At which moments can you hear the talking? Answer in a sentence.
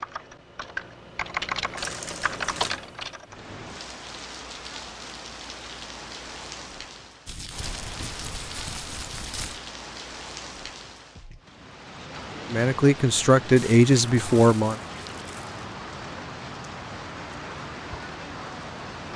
You can hear the talking from 12.5 to 14.8 s.